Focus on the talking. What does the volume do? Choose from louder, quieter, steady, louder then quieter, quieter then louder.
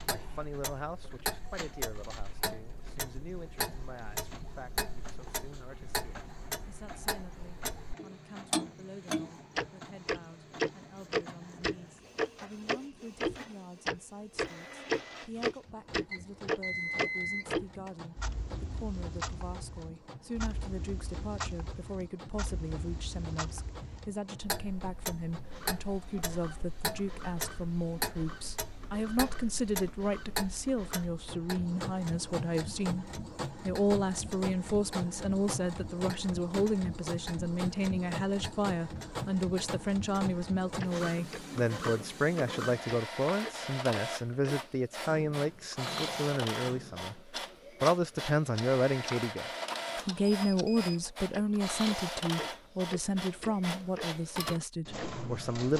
louder.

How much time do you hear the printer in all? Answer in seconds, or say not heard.
56 s.